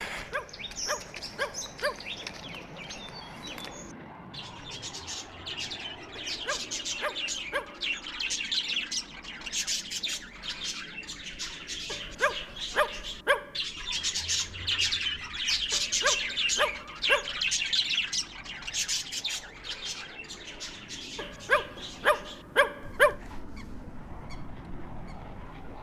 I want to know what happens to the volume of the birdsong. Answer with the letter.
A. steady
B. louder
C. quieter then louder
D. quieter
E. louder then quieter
E.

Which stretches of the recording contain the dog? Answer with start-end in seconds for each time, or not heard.
0.1-1.9, 6.2-7.8, 11.9-13.5, 15.7-17.4, 21.1-23.1.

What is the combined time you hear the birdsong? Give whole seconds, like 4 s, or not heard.
26 s.